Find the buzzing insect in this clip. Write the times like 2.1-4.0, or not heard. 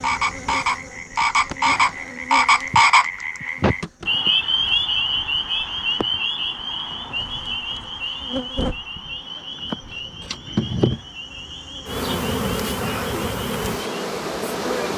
0.0-14.9.